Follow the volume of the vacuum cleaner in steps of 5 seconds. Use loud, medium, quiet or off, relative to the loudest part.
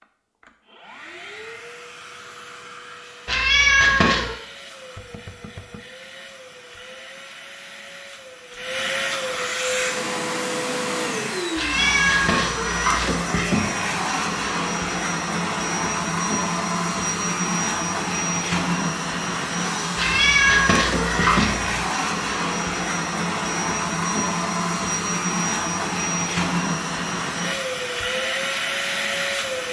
quiet, medium, loud, loud, loud, loud.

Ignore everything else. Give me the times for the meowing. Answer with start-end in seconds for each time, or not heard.
3.2-4.3, 11.6-13.2, 19.9-21.7.